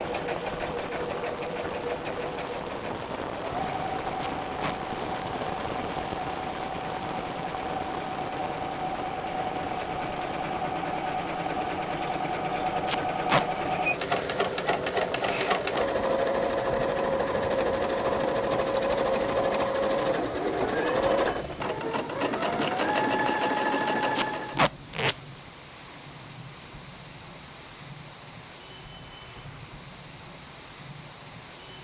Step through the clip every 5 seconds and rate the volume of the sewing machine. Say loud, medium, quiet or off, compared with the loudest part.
medium, medium, loud, loud, loud, off, off.